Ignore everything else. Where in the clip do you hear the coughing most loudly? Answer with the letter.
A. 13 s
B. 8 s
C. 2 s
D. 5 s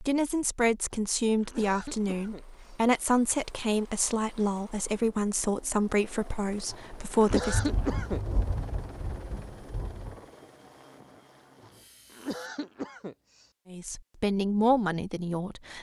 B.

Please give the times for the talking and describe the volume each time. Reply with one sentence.
The talking can be heard from 0.0 to 7.7 s, at a steady volume; and briefly from 13.7 to 15.7 s.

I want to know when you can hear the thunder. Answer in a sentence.
You can hear the thunder from 7.3 to 10.2 s.